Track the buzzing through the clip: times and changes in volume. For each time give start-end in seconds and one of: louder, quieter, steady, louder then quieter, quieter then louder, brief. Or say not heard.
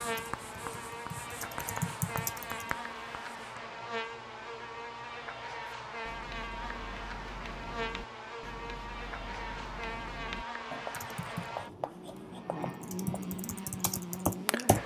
0.0-14.8 steady.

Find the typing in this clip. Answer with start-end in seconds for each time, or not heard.
0.0-2.8, 10.9-14.8.